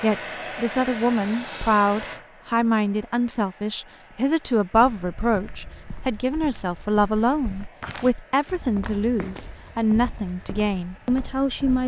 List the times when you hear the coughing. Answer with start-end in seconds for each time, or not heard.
not heard.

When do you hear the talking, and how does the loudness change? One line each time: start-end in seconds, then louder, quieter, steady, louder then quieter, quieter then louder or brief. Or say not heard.
0.0-11.8 steady.